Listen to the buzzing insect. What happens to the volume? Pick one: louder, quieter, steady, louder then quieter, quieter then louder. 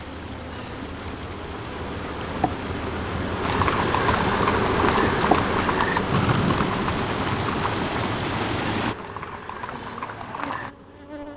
louder then quieter.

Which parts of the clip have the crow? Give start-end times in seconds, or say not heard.
not heard.